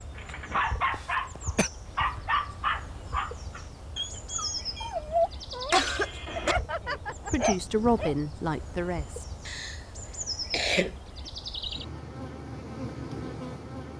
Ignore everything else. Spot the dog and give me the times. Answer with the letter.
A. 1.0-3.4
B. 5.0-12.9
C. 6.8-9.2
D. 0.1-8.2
D.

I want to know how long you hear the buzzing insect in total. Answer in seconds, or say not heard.
14 s.